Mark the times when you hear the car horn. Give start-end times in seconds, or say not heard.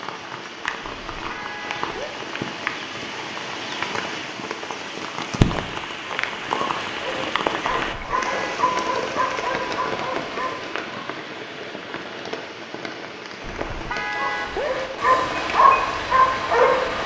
0.8-2.1, 7.8-8.6, 13.4-14.7.